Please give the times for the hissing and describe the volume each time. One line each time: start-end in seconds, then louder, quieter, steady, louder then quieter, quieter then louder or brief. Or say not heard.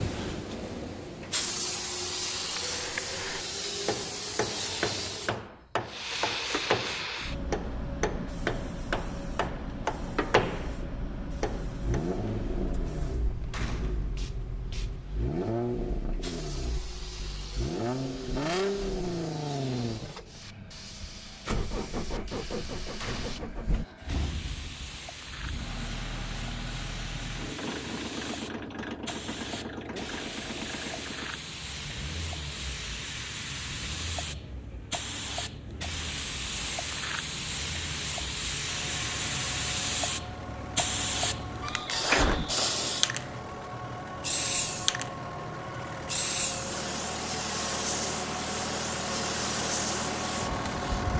0.0-51.1 quieter then louder.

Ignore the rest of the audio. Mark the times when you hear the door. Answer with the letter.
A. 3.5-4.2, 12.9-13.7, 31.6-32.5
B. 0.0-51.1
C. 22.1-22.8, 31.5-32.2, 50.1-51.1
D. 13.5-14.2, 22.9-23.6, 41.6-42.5
D.